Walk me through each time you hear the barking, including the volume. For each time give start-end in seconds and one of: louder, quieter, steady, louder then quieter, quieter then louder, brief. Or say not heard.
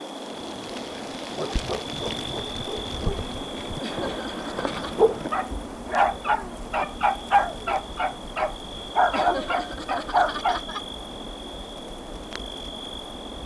0.5-10.6 louder.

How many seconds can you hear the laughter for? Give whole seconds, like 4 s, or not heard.
3 s.